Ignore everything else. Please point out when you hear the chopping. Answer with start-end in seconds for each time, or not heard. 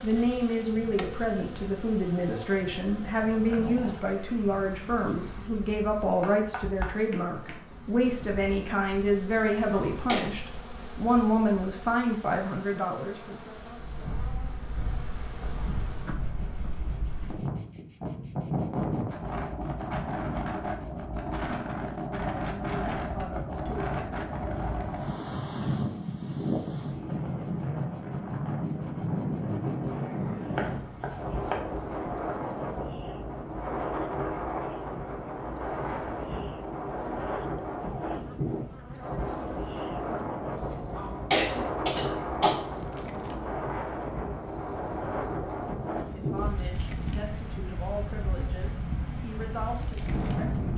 6.2-7.6, 30.6-31.6.